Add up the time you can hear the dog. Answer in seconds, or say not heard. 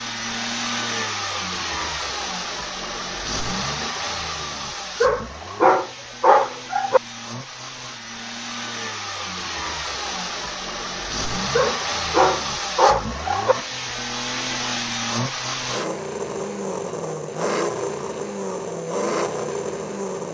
4 s.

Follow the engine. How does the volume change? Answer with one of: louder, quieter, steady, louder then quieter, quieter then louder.
quieter then louder.